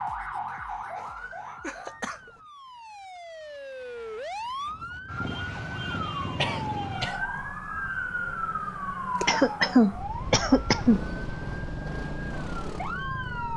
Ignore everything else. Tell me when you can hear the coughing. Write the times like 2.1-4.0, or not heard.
0.5-2.3, 6.3-7.2, 9.2-11.0.